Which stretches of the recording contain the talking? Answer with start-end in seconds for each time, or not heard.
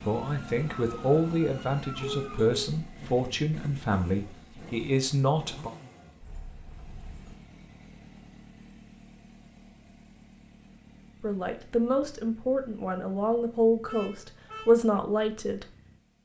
0.1-5.7, 11.2-15.7.